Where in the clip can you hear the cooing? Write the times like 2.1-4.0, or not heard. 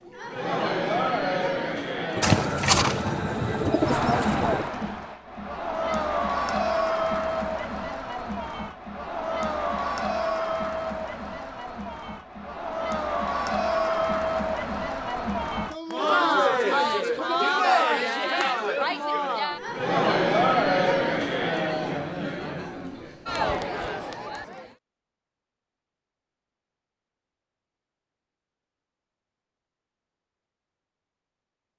2.1-4.7.